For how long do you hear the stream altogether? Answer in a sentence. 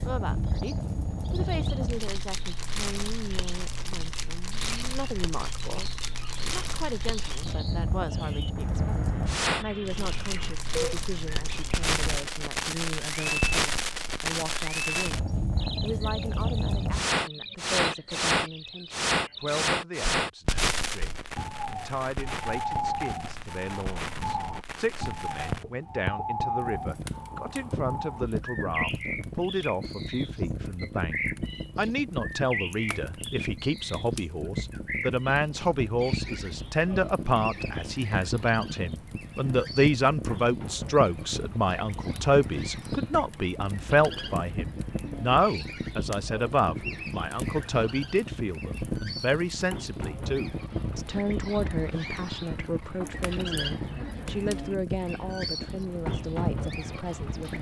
The stream can't be heard in this clip.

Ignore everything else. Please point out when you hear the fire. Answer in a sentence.
The fire can be heard from 0.0 to 57.5 s.